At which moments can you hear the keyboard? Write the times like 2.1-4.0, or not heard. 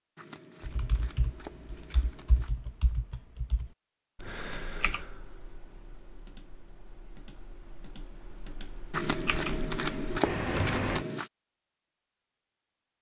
0.6-11.1.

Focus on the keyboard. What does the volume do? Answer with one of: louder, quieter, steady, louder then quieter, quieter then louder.
quieter then louder.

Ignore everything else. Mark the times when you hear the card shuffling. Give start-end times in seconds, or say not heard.
0.1-2.5, 4.3-5.0, 8.9-11.3.